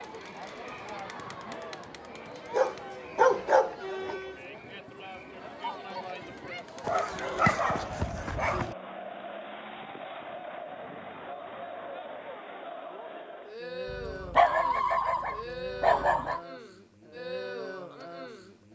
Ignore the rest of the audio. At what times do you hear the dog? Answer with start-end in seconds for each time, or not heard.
2.5-4.2, 6.8-8.8, 13.9-16.4.